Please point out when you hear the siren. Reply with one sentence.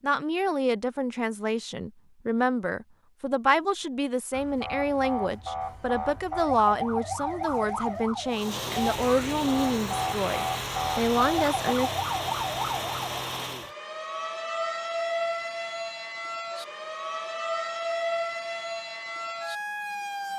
You can hear the siren from 4.3 to 20.3 s.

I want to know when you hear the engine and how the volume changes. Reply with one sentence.
The engine can be heard from 8.3 to 13.8 s, at a steady volume.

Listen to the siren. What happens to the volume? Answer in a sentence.
The volume of the siren stays about the same.